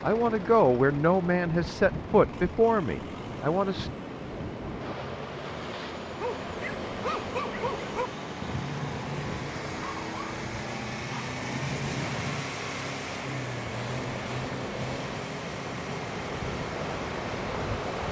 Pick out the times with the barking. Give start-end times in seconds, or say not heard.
5.7-12.4.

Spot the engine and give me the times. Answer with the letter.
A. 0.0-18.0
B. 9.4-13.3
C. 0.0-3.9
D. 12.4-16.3
A.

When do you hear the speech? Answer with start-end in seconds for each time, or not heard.
0.0-3.9.